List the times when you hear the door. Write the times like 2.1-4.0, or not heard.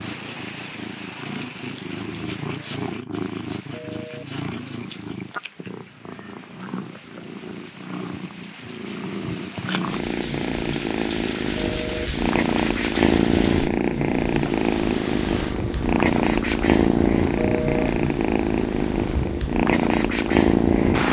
not heard.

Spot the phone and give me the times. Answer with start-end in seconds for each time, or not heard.
3.7-4.2, 11.6-12.1, 17.4-17.9.